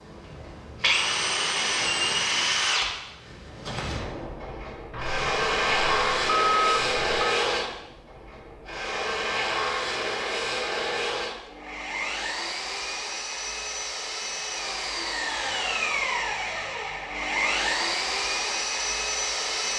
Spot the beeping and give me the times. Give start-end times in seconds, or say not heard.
4.9-7.3.